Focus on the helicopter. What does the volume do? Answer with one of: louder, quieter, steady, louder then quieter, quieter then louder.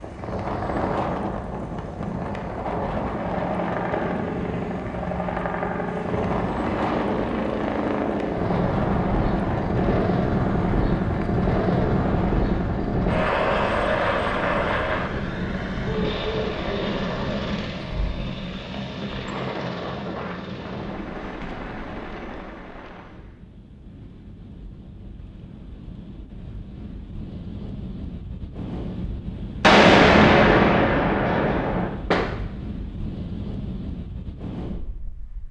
louder then quieter.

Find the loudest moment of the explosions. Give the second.
30 s.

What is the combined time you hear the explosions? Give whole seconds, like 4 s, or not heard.
3 s.